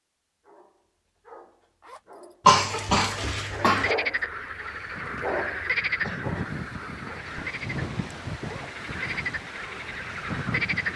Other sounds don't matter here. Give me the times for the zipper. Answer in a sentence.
The zipper can be heard from 1.8 to 2.4 s and from 8.3 to 8.8 s.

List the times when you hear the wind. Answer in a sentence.
You can hear the wind from 4.6 to 10.9 s.